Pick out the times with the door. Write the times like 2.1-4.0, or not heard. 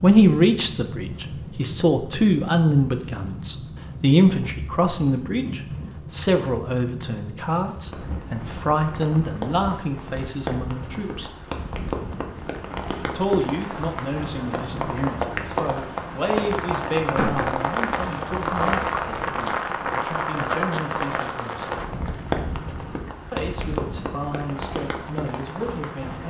17.1-17.6.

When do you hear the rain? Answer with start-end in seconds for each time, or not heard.
0.0-26.2.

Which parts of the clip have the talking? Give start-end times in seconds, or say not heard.
0.0-11.3, 13.1-21.8, 23.3-26.2.